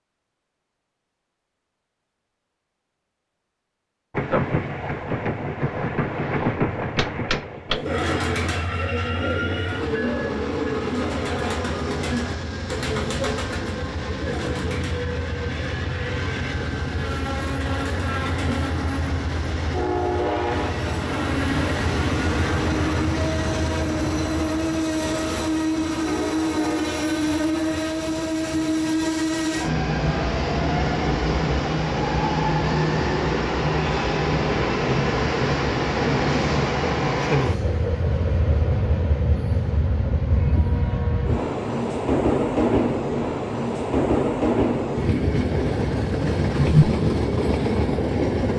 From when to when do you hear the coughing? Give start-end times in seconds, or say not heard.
not heard.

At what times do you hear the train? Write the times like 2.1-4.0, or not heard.
4.1-48.5.